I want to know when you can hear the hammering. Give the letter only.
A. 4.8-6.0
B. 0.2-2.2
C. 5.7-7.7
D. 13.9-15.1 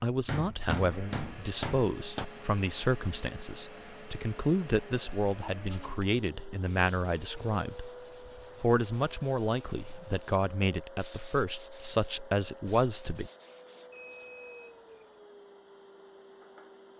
B.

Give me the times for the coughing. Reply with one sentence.
You can't hear the coughing here.